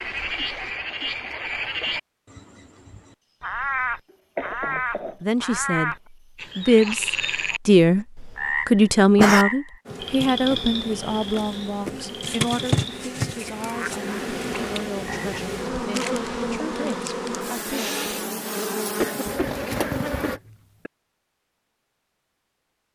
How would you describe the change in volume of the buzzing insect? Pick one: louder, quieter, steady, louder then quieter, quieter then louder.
louder.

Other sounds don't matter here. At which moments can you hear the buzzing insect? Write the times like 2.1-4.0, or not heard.
9.8-20.4.